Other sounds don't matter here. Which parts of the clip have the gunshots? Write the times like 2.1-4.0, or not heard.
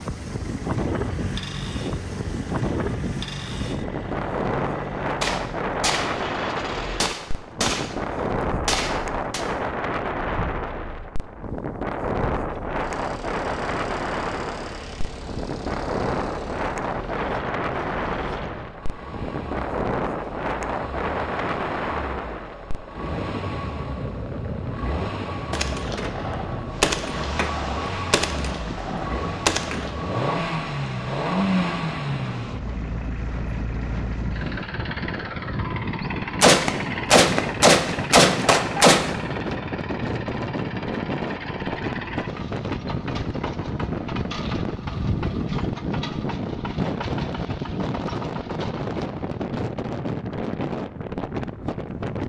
5.2-6.1, 7.0-9.4, 25.5-29.9, 36.4-39.1.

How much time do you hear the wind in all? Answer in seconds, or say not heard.
52 s.